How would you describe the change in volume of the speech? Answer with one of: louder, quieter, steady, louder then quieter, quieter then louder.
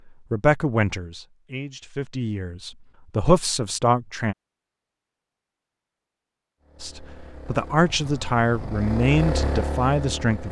steady.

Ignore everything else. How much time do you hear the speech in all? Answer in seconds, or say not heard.
8 s.